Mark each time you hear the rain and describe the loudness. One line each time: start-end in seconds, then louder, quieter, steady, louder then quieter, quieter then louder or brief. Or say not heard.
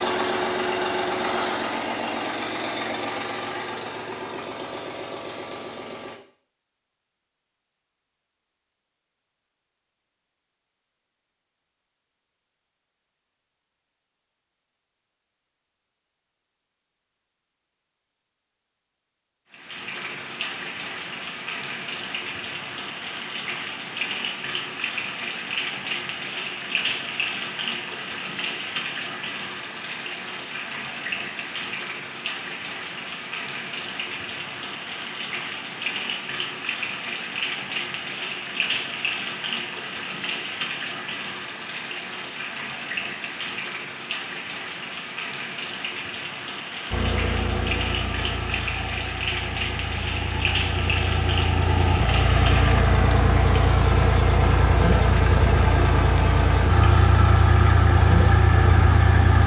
19.5-59.4 steady.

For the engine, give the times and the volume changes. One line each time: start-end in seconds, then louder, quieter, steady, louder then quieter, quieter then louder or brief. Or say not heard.
0.0-6.2 quieter
46.9-59.4 louder.